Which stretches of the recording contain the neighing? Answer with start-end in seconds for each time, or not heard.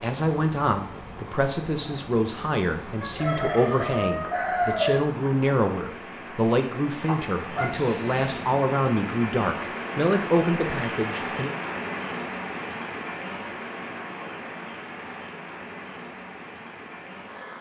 not heard.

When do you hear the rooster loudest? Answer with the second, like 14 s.
5 s.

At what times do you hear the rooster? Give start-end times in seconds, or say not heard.
3.0-5.0.